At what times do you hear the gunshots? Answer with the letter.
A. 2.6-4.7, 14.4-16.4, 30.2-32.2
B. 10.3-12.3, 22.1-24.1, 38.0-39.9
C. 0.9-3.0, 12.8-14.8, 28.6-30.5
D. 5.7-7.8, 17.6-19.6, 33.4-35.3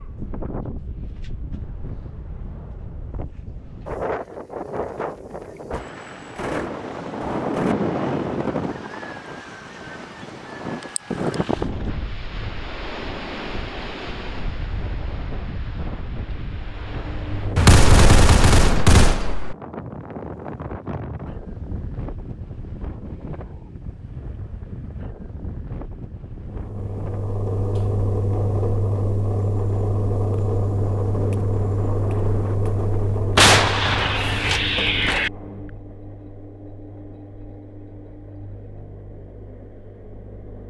D.